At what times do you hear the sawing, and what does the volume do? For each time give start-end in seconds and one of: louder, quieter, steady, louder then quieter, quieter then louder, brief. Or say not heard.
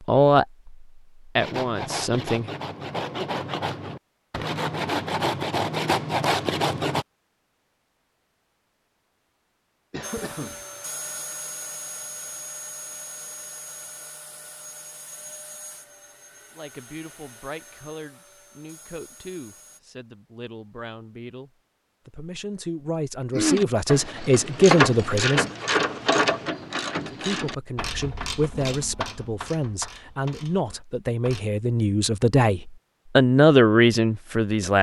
1.4-7.0 louder.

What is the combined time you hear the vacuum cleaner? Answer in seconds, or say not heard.
10 s.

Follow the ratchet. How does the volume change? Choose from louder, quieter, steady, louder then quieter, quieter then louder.
quieter.